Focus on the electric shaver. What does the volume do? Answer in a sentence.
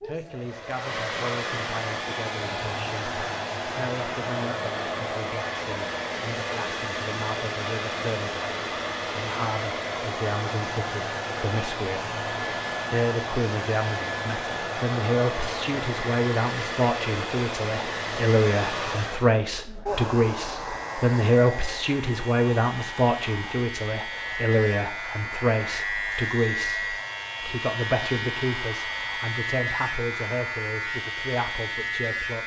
The loudness of the electric shaver goes up.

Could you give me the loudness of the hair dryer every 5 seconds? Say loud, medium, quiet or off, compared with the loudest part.
loud, loud, loud, loud, medium, quiet, off.